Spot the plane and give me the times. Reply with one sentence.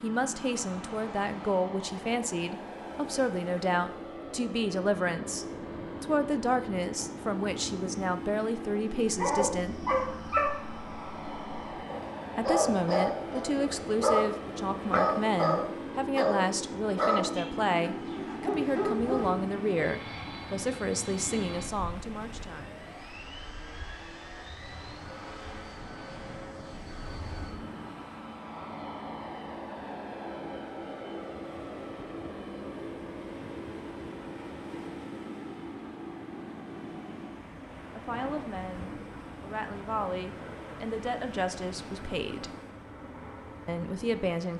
You can hear the plane from 0.0 to 44.4 s.